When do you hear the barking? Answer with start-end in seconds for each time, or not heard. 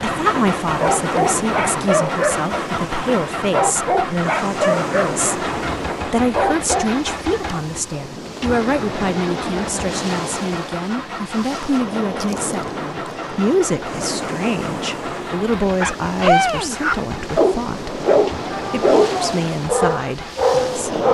0.0-7.0, 15.6-21.0.